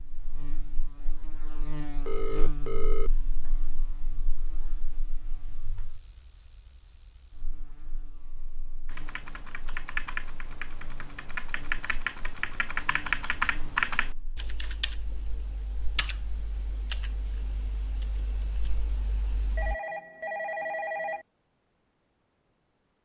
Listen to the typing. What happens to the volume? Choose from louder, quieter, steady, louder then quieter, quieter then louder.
louder then quieter.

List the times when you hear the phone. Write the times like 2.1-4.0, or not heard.
2.0-3.1, 19.6-21.2.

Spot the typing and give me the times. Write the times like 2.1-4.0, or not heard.
8.8-19.8.